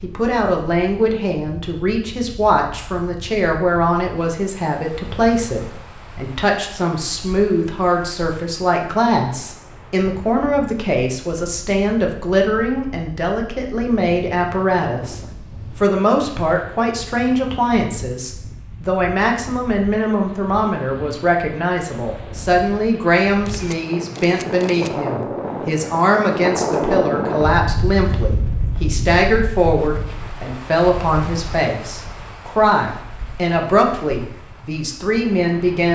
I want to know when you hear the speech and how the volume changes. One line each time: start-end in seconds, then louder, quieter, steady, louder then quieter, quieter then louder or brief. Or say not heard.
0.0-35.9 steady.